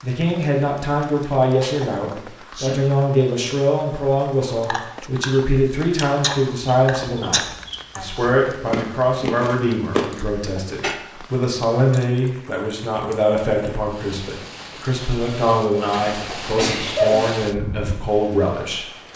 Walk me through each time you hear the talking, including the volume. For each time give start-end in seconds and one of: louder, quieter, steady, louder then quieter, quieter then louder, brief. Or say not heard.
0.0-18.9 steady.